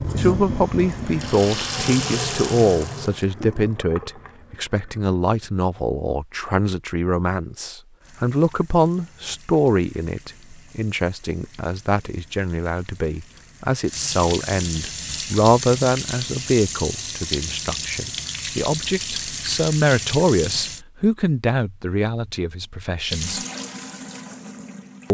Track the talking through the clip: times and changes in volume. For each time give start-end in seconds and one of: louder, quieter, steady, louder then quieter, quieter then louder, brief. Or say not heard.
0.1-23.4 steady.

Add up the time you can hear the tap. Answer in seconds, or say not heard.
20 s.